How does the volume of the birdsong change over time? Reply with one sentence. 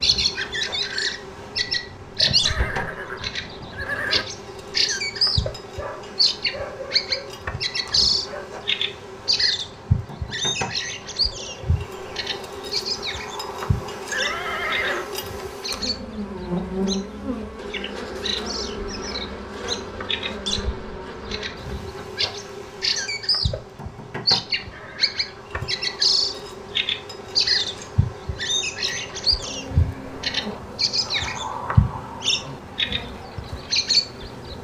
The volume of the birdsong goes down, then up.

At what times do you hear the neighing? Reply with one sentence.
You can hear the neighing from 2.5 to 4.2 s, from 14.1 to 15.1 s and from 24.7 to 25.4 s.